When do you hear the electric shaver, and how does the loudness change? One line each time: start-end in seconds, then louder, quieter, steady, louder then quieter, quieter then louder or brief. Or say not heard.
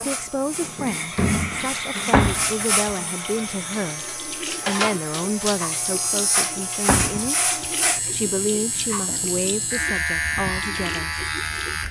0.0-11.8 louder.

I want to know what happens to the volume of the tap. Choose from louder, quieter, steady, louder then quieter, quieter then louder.
quieter.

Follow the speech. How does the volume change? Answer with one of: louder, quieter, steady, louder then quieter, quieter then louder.
steady.